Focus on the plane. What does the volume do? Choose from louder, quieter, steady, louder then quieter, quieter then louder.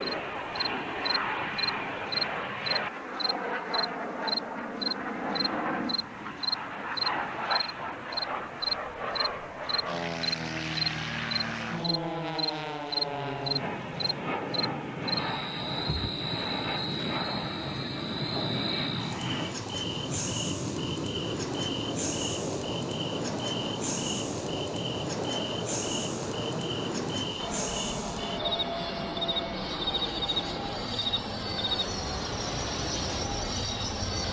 steady.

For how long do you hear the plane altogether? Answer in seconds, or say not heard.
34 s.